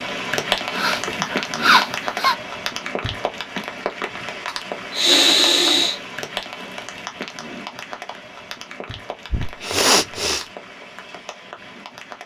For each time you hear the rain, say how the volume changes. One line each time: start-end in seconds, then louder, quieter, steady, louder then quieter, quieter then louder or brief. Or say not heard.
0.0-12.2 quieter.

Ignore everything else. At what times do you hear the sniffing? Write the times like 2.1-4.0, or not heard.
0.7-2.4, 4.5-6.0, 9.3-10.4.